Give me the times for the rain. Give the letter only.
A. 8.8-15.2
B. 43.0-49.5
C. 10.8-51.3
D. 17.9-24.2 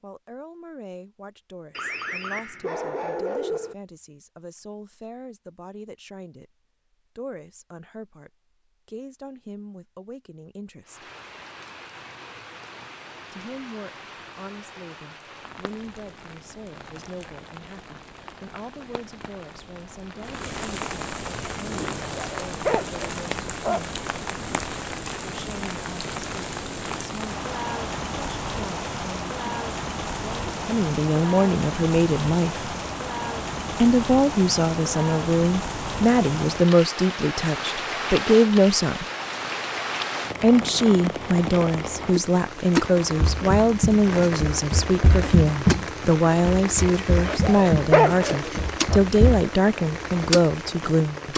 C.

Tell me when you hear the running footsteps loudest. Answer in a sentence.
The loudest moment of the running footsteps is at 46 seconds.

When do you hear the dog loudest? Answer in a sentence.
The volume of the dog peaks at 48 seconds.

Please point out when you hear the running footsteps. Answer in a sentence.
The running footsteps can be heard from 43.0 to 49.5 s.